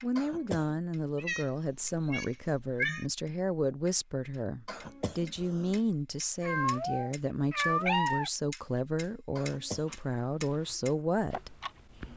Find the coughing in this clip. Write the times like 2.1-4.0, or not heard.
0.1-0.8, 4.7-5.8, 9.3-9.9.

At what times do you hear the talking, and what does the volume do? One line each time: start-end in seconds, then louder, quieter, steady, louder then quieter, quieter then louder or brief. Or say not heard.
0.0-11.6 steady.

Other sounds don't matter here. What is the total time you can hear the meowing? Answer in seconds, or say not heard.
4 s.